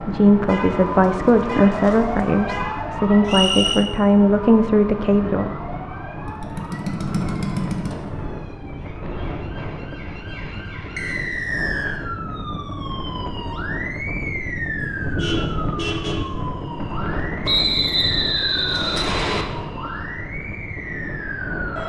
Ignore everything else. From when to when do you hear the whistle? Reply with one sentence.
The whistle can be heard from 3.2 to 3.9 s, from 10.9 to 12.0 s and from 17.4 to 19.4 s.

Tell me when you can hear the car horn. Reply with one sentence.
The car horn can be heard from 0.5 to 2.8 s and from 15.0 to 16.3 s.